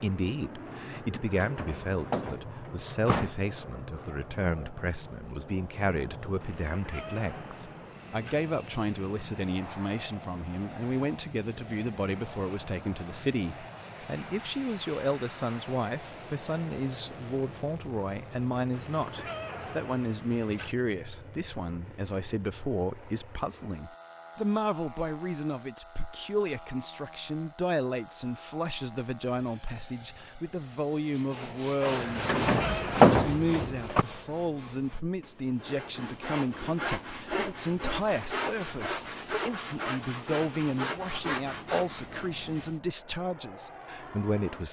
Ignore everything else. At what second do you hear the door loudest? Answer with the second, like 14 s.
33 s.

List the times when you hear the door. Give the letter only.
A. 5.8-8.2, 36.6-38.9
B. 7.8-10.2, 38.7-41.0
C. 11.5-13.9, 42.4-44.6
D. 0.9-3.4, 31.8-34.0
D.